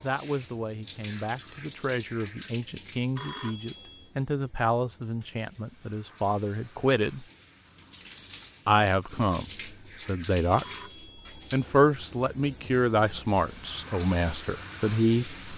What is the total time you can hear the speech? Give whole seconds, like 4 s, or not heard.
13 s.